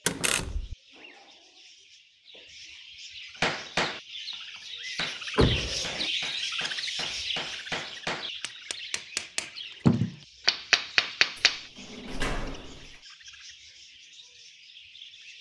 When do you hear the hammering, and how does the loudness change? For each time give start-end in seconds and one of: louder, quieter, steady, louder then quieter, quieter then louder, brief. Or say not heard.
3.4-4.3 brief
5.0-11.7 louder.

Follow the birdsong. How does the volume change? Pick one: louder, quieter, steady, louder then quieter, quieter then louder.
louder then quieter.